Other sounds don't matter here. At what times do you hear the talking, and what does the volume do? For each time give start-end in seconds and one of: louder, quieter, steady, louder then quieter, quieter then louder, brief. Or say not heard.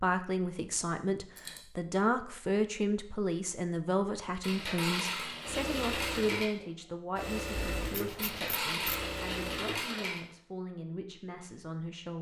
0.0-12.1 quieter.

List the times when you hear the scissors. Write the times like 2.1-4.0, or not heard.
7.5-9.1.